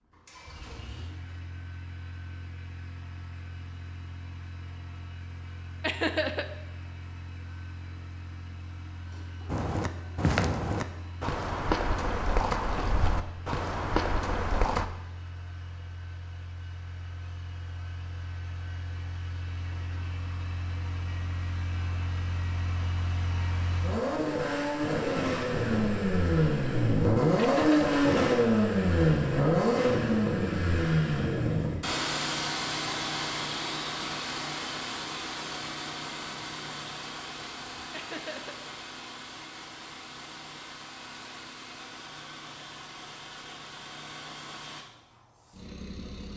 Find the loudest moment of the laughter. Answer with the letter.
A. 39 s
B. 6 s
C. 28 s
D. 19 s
B.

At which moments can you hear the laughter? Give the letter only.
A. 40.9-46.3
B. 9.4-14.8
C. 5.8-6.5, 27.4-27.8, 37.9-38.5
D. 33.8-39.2
C.